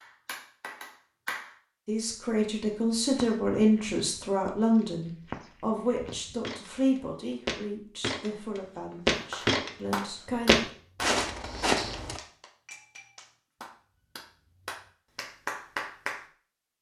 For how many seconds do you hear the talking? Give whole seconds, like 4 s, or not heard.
9 s.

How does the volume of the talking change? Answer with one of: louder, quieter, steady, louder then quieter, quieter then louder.
quieter.